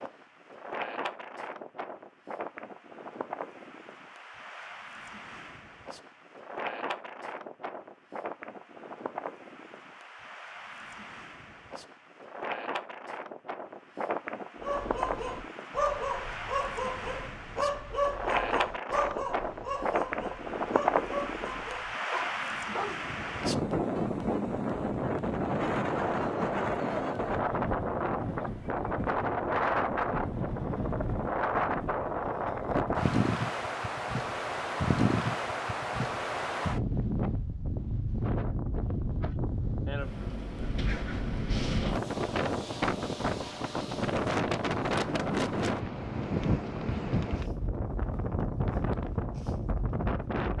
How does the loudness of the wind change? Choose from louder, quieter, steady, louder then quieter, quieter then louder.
louder.